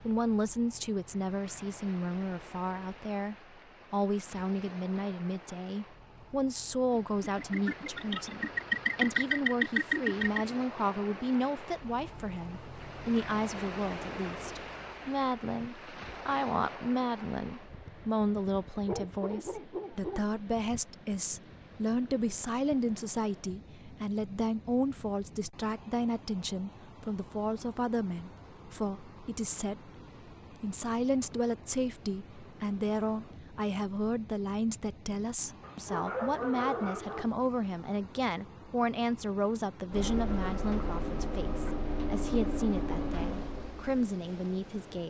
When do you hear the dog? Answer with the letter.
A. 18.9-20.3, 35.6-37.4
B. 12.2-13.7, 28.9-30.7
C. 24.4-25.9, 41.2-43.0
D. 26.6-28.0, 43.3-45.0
A.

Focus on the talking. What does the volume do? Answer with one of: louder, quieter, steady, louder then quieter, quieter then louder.
steady.